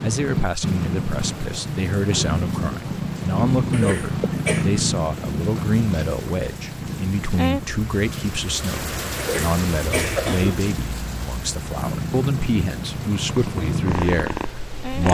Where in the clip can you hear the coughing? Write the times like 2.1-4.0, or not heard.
3.7-4.7, 9.2-10.7.